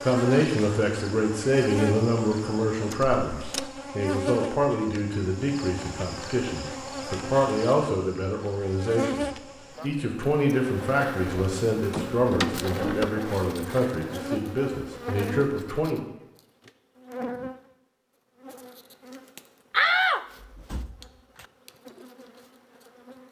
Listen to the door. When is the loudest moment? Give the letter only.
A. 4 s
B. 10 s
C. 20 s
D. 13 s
C.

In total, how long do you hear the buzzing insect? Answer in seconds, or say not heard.
23 s.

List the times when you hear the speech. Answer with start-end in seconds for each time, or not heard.
0.0-16.1.